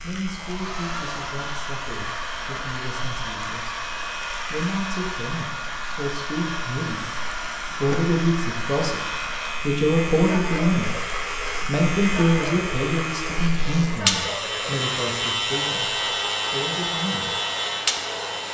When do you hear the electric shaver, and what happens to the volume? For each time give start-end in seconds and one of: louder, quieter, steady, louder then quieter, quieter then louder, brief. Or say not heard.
0.0-18.4 louder.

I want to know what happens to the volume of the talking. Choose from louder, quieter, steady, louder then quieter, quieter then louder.
louder then quieter.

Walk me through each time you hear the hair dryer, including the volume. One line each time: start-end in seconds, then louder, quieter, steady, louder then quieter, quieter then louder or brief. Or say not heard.
0.1-18.4 steady.